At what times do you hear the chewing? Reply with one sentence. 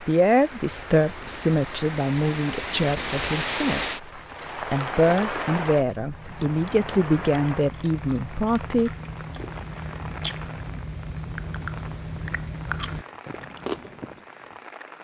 You can hear the chewing from 4.0 to 14.2 s.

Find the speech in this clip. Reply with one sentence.
You can hear the speech from 0.0 to 3.9 s and from 4.7 to 8.9 s.